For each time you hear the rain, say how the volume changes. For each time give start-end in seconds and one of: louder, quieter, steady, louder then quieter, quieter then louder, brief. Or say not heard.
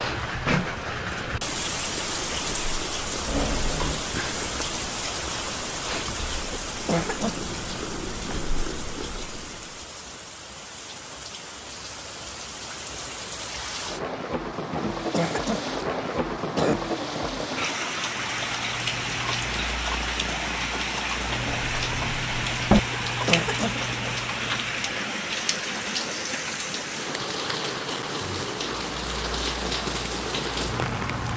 0.0-31.3 quieter then louder.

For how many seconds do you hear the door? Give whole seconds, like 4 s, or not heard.
2 s.